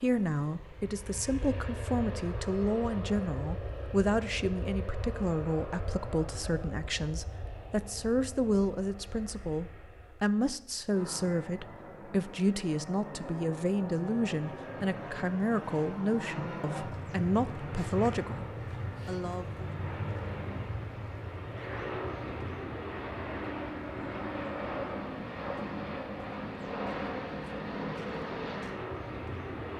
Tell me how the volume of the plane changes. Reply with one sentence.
The loudness of the plane goes down, then up.